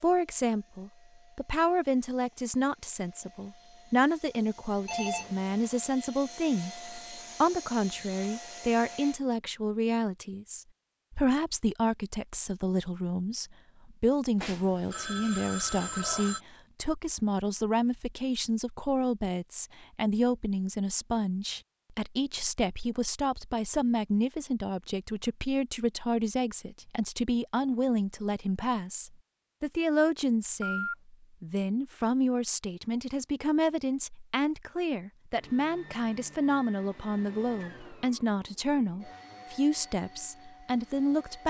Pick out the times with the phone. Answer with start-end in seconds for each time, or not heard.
4.8-5.5, 14.4-16.4, 30.4-30.9.